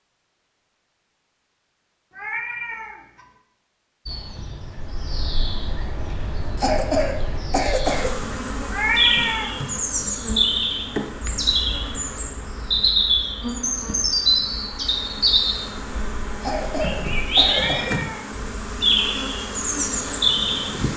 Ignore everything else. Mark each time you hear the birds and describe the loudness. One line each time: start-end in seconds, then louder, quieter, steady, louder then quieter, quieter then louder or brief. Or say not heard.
4.0-20.9 louder.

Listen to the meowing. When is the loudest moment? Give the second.
9 s.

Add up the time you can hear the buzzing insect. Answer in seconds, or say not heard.
13 s.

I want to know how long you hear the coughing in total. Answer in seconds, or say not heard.
3 s.